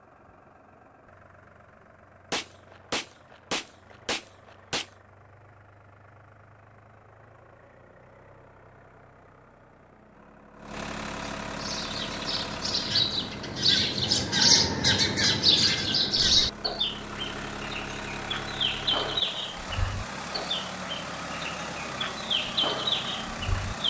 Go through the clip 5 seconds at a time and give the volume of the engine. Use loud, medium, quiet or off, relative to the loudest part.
quiet, quiet, loud, loud, loud.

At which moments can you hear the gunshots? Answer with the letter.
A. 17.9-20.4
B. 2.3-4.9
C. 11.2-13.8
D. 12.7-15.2
B.